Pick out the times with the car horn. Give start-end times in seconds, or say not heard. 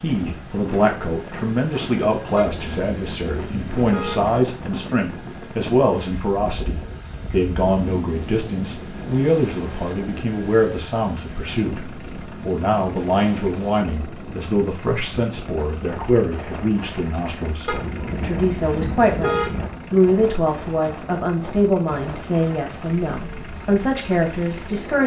2.4-4.3, 17.6-19.7.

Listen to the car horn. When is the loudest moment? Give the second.
19 s.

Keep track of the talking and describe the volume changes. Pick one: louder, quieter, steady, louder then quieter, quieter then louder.
steady.